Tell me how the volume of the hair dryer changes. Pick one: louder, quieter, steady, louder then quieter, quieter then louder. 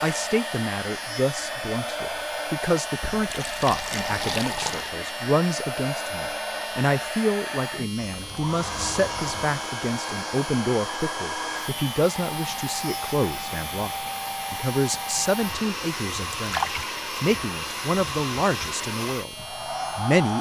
steady.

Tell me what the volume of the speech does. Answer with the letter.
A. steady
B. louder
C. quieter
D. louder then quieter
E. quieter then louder
A.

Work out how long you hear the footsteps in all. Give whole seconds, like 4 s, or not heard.
not heard.